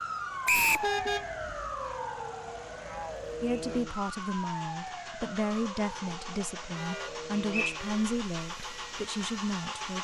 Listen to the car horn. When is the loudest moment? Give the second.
1 s.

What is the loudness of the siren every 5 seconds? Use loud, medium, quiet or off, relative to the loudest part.
loud, medium.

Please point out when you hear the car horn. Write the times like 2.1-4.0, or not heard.
0.8-1.7, 6.8-8.2.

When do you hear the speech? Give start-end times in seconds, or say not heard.
3.4-10.0.